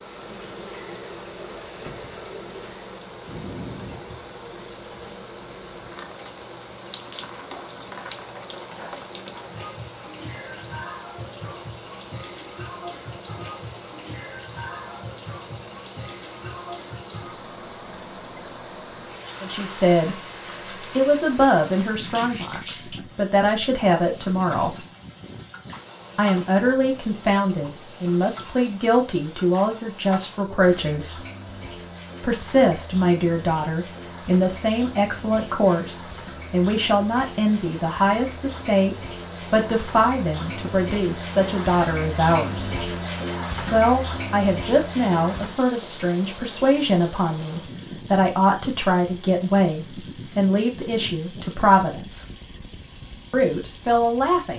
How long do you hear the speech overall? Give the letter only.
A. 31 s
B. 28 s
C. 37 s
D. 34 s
A.